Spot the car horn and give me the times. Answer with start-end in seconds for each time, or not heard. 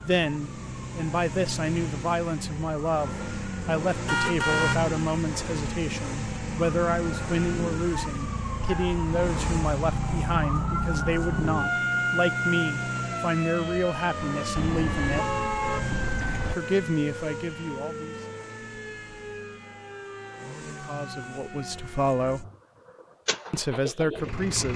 4.0-4.8, 14.6-16.6.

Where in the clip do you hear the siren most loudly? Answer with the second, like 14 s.
12 s.